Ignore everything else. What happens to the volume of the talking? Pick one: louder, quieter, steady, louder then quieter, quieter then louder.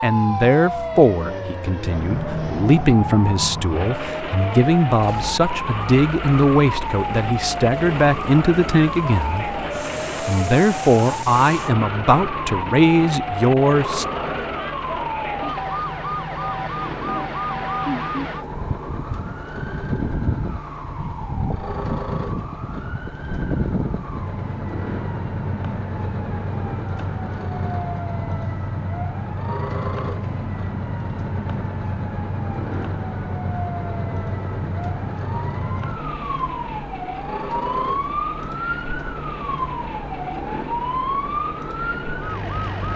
steady.